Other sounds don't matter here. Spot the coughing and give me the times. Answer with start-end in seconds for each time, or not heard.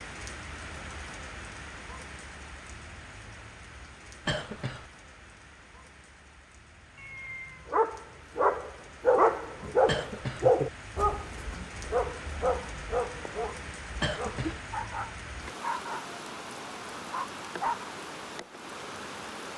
4.2-4.8, 9.8-10.5, 14.0-14.6.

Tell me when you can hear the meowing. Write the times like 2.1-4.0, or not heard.
7.0-7.7.